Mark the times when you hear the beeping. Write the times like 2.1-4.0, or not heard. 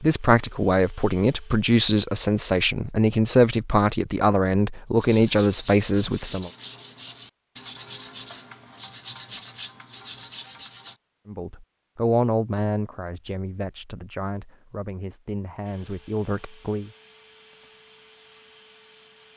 not heard.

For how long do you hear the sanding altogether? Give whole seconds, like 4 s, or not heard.
6 s.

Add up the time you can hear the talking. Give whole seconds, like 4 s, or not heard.
12 s.